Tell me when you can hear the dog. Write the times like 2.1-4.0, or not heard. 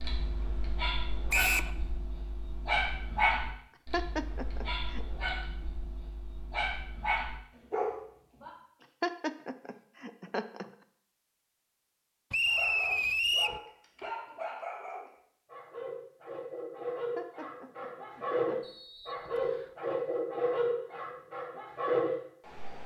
0.0-8.5, 12.4-22.8.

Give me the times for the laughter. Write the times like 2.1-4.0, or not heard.
3.9-5.0, 9.0-10.7, 17.1-18.6.